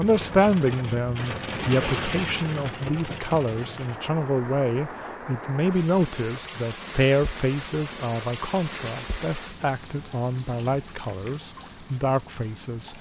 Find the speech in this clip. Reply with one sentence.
You can hear the speech from 0.0 to 12.9 s.